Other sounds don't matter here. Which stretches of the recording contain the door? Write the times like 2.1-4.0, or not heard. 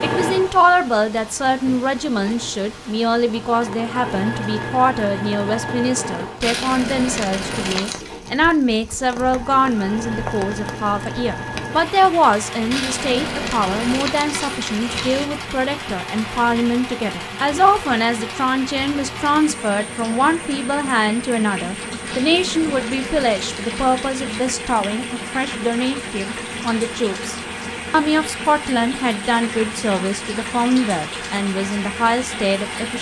not heard.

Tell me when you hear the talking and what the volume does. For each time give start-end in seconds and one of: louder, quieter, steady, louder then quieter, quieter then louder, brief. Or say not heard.
0.0-32.9 steady.